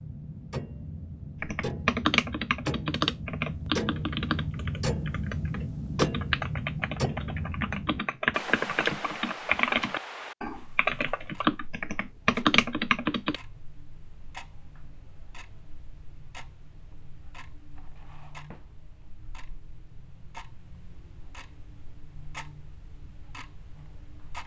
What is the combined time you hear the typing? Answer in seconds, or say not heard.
12 s.